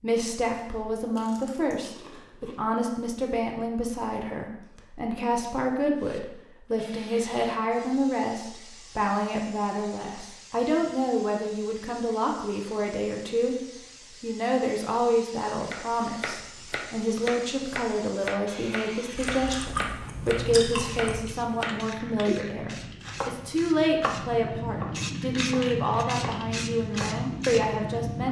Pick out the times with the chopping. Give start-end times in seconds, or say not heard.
15.7-27.2.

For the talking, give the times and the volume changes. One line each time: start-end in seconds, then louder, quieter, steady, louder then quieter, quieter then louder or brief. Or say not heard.
0.0-13.6 steady
14.2-28.2 steady.